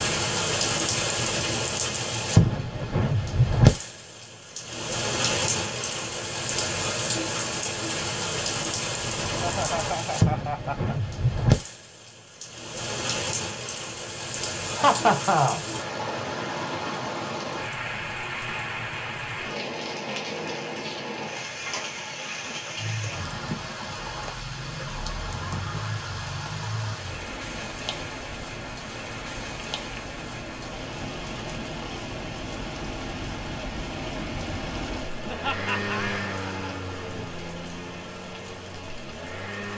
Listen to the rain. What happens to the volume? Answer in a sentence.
The volume of the rain goes down.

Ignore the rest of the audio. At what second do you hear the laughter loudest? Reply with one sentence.
The volume of the laughter peaks at 15 seconds.